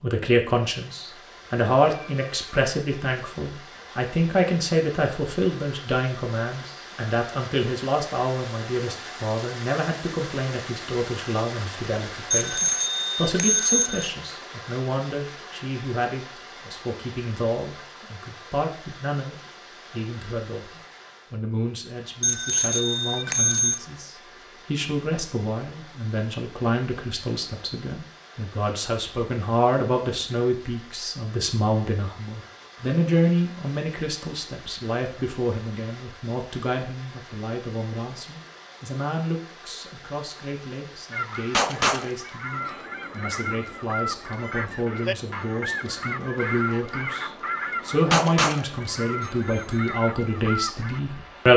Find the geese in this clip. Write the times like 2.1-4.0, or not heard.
41.1-51.0.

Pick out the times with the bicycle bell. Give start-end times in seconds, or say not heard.
12.3-14.1, 22.2-23.8, 49.2-49.8.